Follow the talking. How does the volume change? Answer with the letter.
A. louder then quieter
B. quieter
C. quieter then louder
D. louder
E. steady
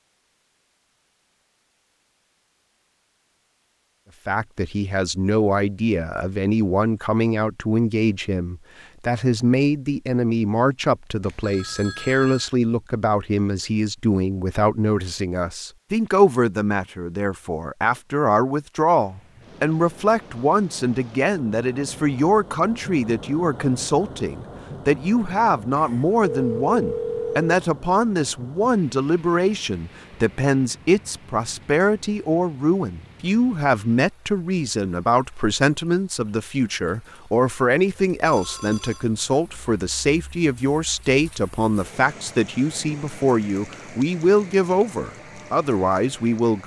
E.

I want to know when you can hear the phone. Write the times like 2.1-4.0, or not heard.
11.2-12.5, 25.8-27.6, 38.2-39.0.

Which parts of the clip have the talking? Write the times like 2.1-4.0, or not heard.
4.2-46.6.